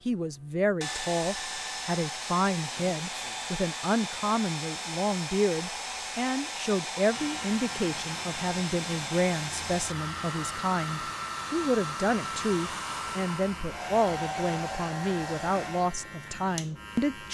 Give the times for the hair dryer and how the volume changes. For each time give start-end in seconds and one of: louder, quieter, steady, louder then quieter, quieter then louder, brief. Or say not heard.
0.0-15.9 steady.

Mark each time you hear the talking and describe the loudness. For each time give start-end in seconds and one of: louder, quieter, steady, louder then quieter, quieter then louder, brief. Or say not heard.
0.1-17.2 steady.